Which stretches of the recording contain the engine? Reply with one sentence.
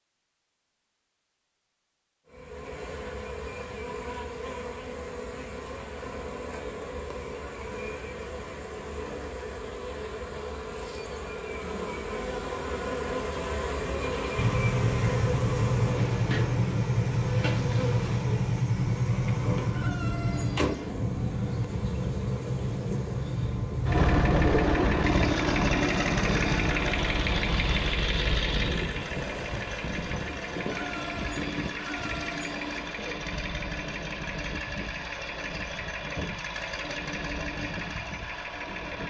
The engine can be heard from 14.3 to 39.0 s.